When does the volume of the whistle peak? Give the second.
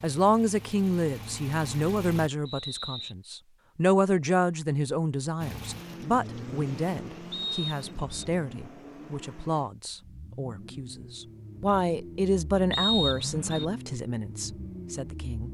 13 s.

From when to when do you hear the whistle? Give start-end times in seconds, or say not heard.
2.5-3.1, 7.3-8.2, 12.7-13.7.